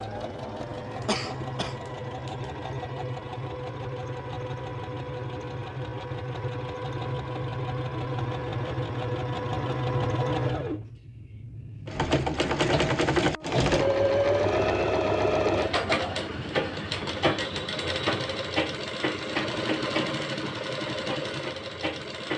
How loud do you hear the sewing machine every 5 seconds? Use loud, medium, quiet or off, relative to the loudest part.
medium, medium, loud, loud, medium.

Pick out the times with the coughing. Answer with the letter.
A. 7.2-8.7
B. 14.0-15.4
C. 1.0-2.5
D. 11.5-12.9
C.